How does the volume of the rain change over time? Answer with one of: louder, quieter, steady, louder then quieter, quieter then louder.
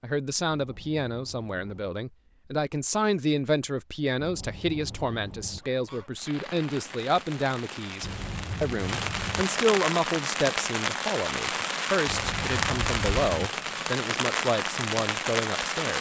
louder.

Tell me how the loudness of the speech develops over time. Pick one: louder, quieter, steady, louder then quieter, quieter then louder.
steady.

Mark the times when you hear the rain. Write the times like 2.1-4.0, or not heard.
6.2-15.9.